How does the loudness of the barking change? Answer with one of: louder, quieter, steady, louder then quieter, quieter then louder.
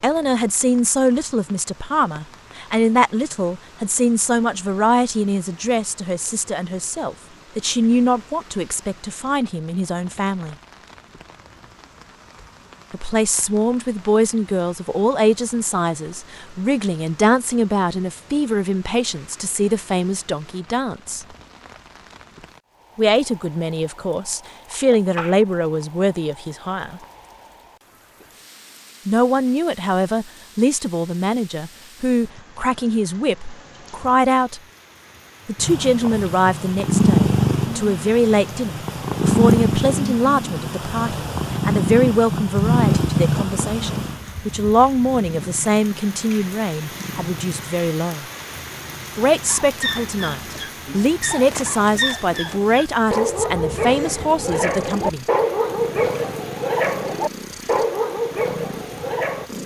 louder.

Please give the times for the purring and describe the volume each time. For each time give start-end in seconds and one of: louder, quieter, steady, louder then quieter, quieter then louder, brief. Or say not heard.
35.5-59.6 quieter.